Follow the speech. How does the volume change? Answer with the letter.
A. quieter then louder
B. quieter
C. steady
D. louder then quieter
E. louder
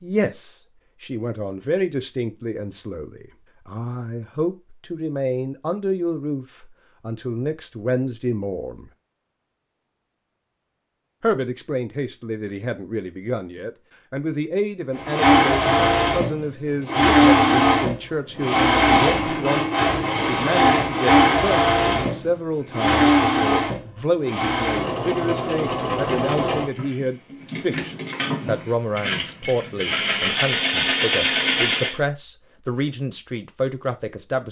C.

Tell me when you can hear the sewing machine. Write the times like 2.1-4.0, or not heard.
14.9-32.0.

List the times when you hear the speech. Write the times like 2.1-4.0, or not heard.
0.0-8.9, 11.2-34.4.